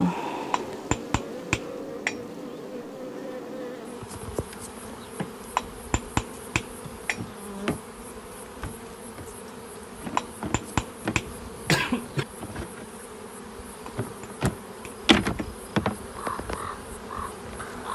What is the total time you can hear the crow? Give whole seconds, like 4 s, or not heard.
2 s.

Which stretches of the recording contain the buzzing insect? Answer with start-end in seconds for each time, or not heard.
0.0-17.9.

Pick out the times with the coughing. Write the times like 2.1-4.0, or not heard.
11.2-12.2.